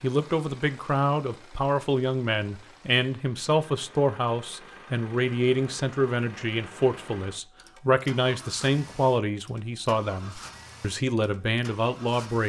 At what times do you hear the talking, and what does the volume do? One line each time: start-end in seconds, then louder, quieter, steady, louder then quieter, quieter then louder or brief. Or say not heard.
0.0-12.4 steady.